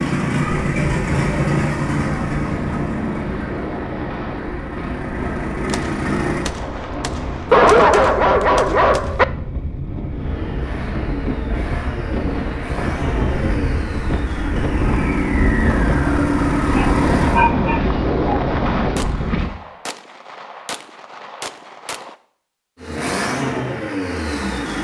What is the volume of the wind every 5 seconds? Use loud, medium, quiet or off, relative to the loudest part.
medium, medium, medium, loud, off.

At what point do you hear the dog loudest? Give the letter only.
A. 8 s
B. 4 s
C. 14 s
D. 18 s
A.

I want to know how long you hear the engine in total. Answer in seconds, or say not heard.
16 s.